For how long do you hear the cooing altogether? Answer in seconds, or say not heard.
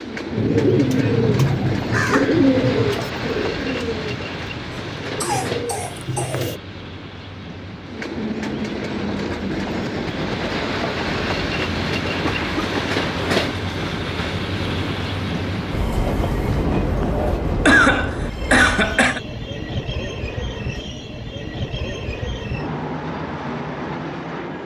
6 s.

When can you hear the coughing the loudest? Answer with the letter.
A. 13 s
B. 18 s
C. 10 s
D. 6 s
B.